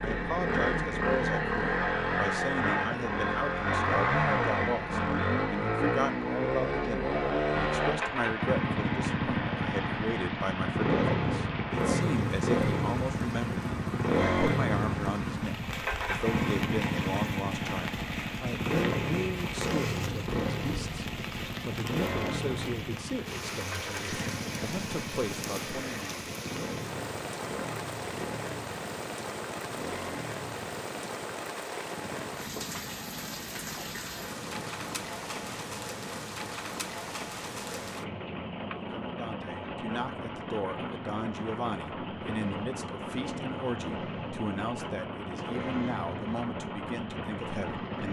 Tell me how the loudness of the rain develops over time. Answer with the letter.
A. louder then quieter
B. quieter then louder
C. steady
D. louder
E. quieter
C.